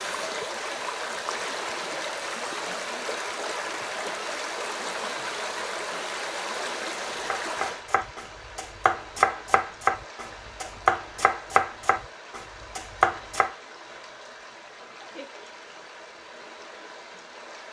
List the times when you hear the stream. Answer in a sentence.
You can hear the stream from 0.0 to 17.6 s.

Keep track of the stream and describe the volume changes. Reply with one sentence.
The volume of the stream goes down.